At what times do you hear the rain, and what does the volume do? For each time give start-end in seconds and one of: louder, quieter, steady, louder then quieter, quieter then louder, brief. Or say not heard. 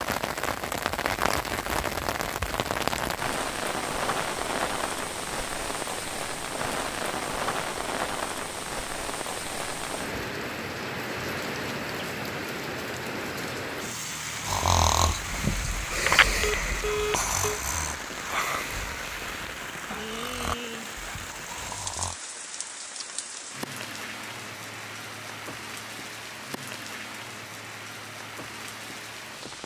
0.0-29.6 quieter.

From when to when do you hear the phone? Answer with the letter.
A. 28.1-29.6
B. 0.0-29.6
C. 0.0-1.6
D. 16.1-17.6
D.